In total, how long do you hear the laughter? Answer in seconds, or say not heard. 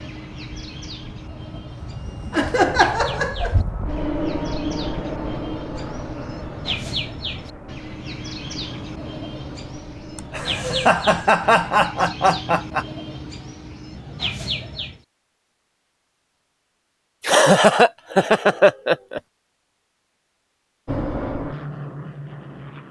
6 s.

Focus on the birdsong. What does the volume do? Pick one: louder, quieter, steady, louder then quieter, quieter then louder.
louder.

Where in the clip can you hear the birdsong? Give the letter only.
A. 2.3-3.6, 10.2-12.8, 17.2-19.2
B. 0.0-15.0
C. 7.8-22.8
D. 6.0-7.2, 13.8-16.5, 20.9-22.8
B.